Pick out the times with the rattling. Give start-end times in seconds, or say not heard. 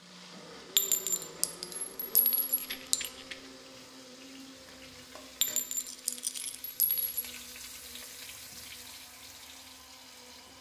2.6-3.5, 5.8-6.6.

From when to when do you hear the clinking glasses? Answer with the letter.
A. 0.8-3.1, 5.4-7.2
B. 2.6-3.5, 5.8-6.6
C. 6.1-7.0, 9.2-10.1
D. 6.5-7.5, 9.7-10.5
A.